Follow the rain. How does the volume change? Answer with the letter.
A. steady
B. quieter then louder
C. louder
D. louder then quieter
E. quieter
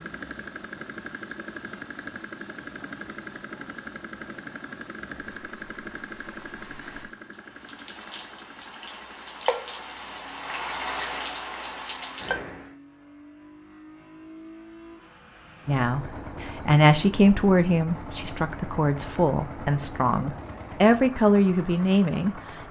C.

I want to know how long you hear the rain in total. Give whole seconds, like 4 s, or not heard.
13 s.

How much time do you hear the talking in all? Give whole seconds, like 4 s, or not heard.
7 s.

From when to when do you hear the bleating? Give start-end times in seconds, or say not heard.
not heard.